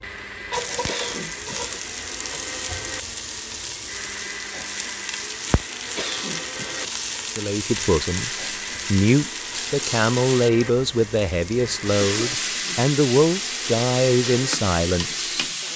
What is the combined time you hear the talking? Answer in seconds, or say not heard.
8 s.